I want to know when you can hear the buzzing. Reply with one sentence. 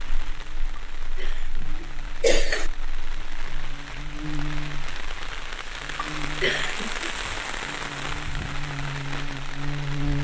The buzzing can be heard from 0.0 to 10.2 s.